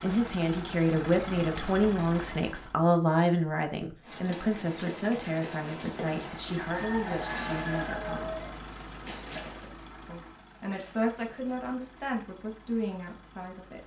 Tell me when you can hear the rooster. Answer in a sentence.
You can hear the rooster from 6.7 to 8.6 s.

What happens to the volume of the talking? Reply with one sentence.
The loudness of the talking goes down.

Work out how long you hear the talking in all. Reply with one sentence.
The talking can be heard for 12 seconds in total.